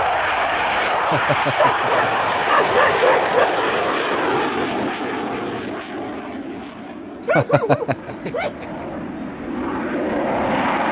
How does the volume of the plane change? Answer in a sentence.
The volume of the plane goes down, then up.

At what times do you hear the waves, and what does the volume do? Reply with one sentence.
The waves can't be heard in this clip.